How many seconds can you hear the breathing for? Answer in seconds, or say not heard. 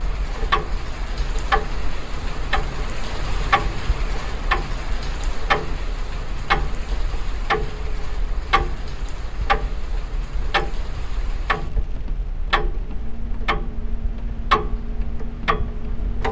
not heard.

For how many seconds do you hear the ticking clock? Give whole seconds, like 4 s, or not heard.
16 s.